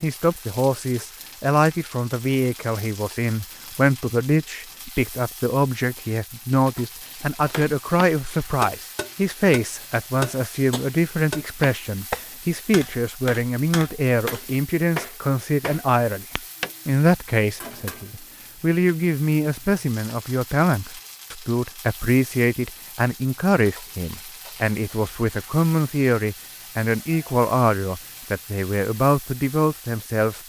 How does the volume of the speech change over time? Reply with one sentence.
The loudness of the speech stays about the same.